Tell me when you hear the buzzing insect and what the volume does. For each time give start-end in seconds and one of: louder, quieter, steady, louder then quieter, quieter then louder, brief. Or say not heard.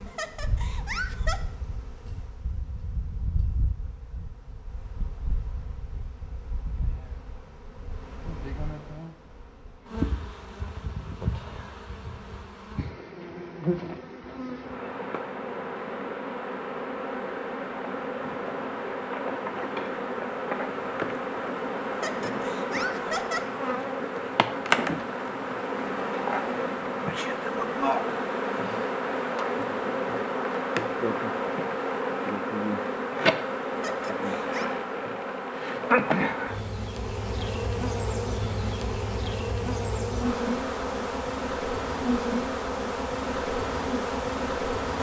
0.0-44.9 louder.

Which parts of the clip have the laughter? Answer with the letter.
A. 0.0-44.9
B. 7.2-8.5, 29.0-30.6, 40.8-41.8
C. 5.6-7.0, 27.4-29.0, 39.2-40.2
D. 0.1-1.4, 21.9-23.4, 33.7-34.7
D.